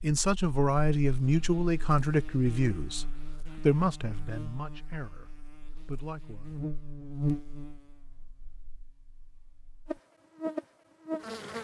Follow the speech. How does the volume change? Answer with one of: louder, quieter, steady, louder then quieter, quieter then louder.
quieter.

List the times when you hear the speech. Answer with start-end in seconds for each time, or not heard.
0.0-6.6.